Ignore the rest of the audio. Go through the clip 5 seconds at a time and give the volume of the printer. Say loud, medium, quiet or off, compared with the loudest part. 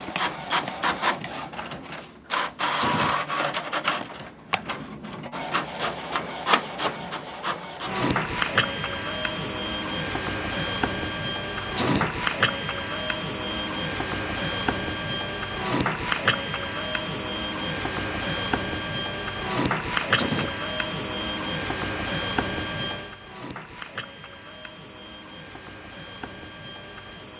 loud, loud, loud, loud, loud, quiet.